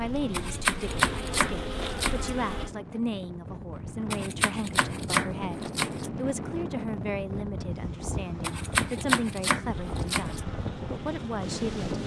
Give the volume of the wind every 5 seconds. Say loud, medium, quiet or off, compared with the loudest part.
medium, loud, loud.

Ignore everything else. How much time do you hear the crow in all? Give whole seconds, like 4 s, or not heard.
not heard.